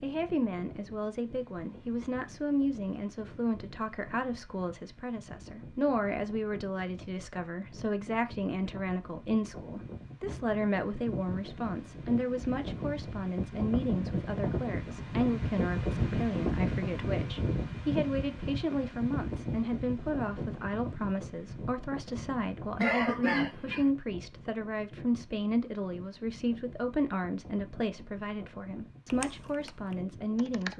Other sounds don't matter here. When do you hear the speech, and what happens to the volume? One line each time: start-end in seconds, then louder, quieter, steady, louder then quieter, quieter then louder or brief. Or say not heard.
0.0-30.7 steady.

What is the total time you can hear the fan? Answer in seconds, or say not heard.
31 s.